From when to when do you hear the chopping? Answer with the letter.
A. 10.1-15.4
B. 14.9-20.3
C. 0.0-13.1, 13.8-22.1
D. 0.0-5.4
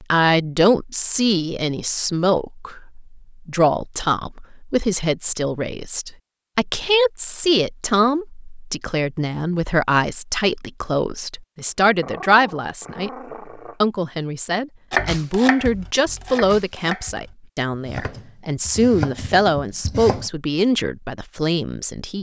B.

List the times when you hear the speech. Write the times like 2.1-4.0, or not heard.
0.0-13.1, 13.8-22.1.